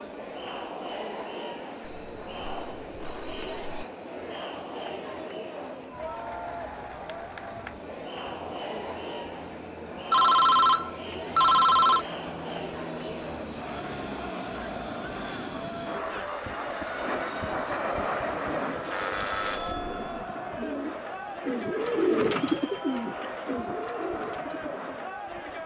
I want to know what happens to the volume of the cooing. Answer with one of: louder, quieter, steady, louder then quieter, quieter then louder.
louder then quieter.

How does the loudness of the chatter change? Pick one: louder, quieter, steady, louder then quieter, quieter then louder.
steady.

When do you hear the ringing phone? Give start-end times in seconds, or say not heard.
1.8-3.9, 10.1-12.1, 18.9-20.1.